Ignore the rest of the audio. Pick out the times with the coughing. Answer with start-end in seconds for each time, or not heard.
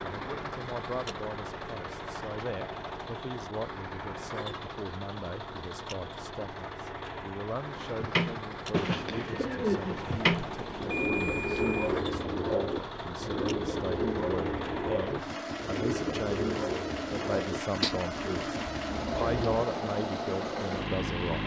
not heard.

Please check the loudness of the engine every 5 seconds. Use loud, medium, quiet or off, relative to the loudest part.
medium, medium, medium, loud, loud.